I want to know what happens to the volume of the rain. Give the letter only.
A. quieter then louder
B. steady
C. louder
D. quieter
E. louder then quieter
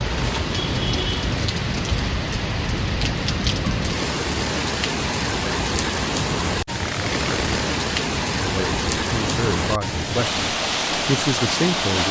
B.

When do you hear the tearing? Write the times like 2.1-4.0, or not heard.
0.1-0.6, 6.7-7.7.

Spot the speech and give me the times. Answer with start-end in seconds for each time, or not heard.
8.4-12.0.